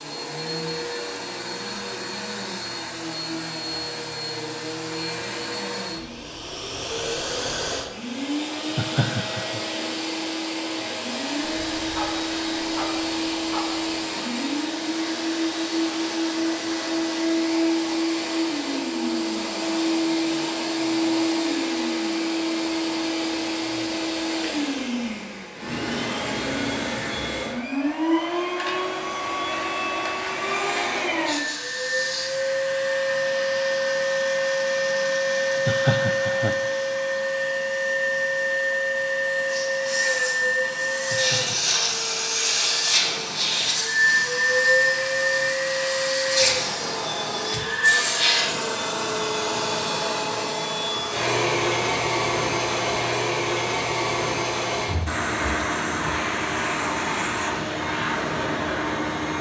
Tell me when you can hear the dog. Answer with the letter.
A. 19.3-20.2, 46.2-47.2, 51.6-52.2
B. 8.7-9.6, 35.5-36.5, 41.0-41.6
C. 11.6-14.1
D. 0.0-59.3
C.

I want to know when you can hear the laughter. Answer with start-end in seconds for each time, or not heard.
8.7-9.6, 35.5-36.5, 41.0-41.6.